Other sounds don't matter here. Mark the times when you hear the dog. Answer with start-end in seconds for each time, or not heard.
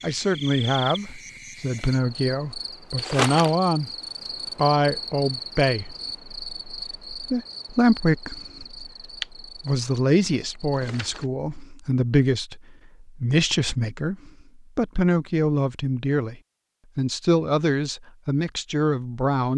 not heard.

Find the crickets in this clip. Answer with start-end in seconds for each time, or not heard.
0.0-11.3.